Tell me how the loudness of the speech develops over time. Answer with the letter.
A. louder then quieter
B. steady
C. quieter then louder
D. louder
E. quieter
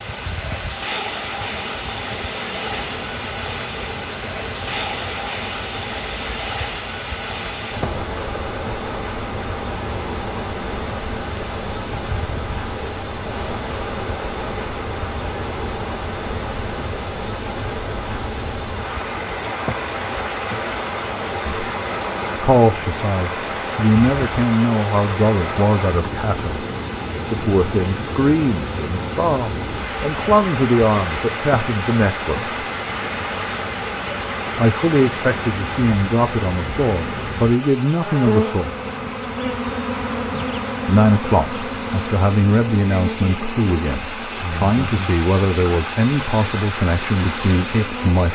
B.